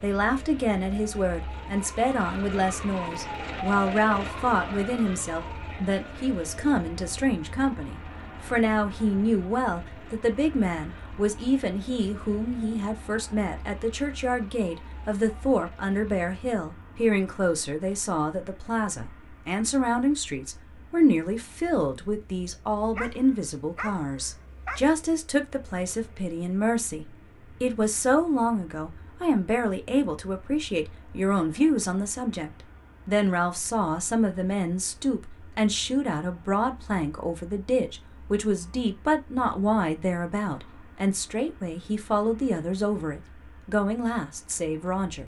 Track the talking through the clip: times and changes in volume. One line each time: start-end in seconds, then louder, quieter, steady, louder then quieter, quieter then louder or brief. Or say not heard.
0.0-45.2 steady.